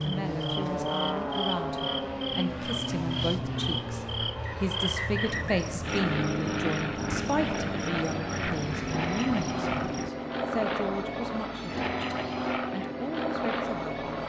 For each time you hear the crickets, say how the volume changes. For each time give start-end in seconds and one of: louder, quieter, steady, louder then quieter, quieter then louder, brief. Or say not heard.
0.0-10.1 steady.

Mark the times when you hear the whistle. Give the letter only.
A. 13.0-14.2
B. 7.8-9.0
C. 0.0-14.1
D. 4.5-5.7
D.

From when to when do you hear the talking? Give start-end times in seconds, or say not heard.
0.0-14.1.